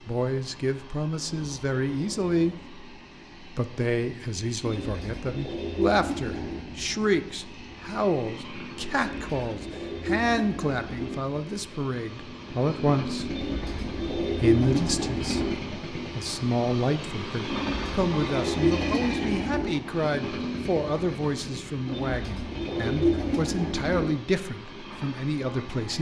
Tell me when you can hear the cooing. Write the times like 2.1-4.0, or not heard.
1.1-2.7, 4.6-6.7, 8.9-11.2, 13.2-15.6, 17.4-19.8, 21.9-24.1.